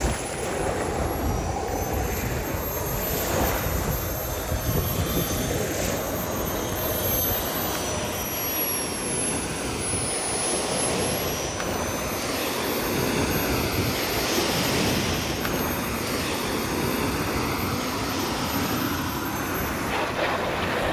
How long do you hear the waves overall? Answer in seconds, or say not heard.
21 s.